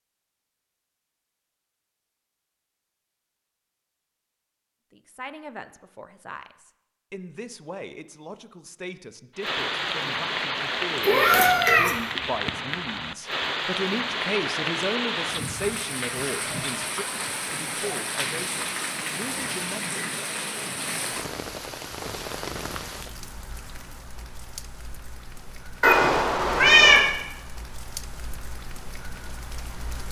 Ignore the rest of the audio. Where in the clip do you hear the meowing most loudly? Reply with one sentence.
The loudest moment of the meowing is at 27 seconds.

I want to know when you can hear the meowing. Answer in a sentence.
The meowing can be heard from 11.0 to 11.9 s and from 25.8 to 27.1 s.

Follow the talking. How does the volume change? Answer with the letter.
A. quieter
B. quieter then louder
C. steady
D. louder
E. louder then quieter
E.